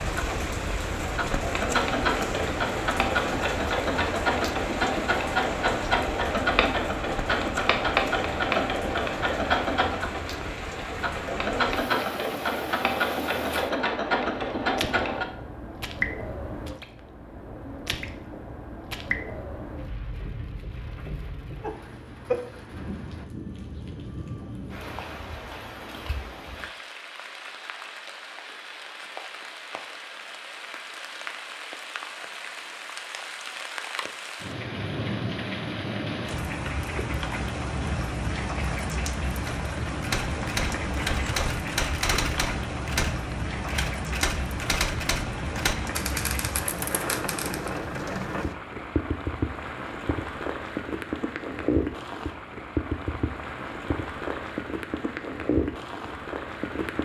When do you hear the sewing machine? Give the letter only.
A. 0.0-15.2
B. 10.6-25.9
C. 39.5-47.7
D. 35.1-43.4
A.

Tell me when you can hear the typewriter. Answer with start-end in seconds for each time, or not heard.
39.5-47.7.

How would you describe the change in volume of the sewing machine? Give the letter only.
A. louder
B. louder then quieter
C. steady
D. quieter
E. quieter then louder
C.